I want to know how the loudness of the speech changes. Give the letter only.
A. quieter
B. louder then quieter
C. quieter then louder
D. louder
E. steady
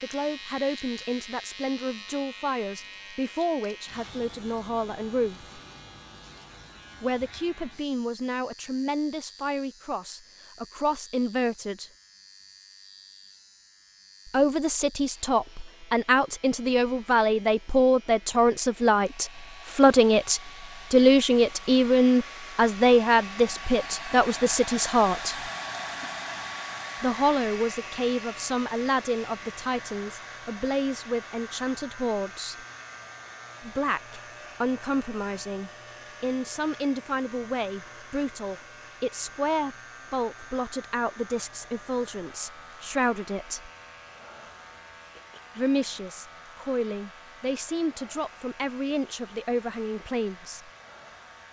B.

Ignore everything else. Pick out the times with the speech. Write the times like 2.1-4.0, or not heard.
0.0-5.5, 7.0-11.9, 14.2-25.5, 27.0-32.6, 33.6-43.7, 45.5-50.7.